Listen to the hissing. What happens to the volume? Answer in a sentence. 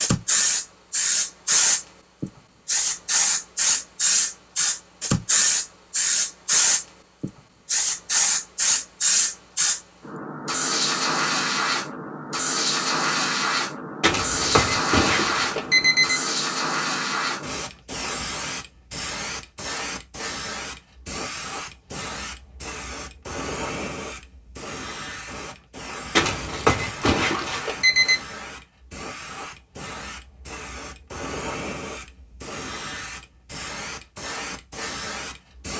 The volume of the hissing goes down.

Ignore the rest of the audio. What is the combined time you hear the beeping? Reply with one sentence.
You can hear the beeping for 4 seconds altogether.